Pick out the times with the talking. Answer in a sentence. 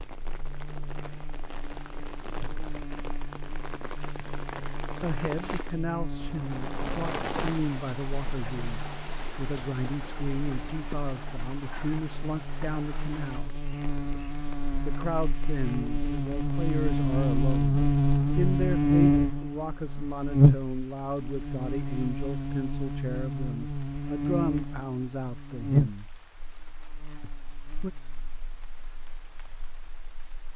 You can hear the talking from 5.0 to 13.6 s, from 14.8 to 26.1 s and from 27.2 to 27.9 s.